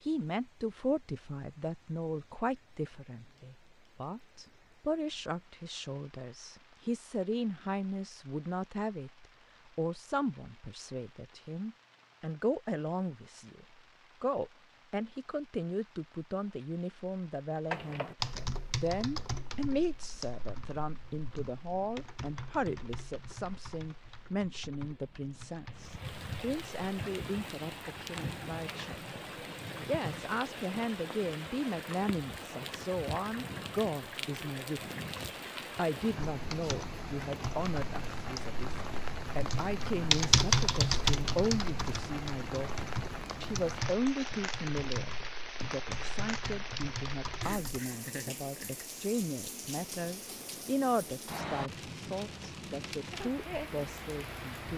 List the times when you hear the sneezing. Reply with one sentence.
The sneezing can't be heard in this clip.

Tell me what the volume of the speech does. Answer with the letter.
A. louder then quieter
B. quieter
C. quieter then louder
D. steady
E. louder
D.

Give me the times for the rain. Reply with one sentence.
The rain can be heard from 0.0 to 54.7 s.